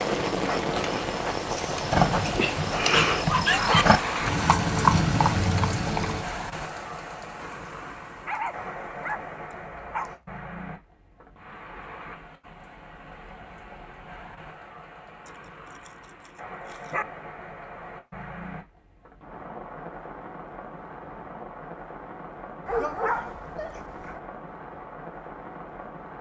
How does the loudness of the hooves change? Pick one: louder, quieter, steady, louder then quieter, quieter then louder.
louder.